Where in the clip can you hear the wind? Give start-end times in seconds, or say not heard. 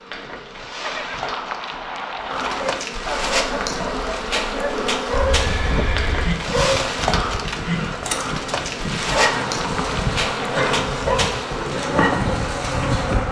5.2-13.2.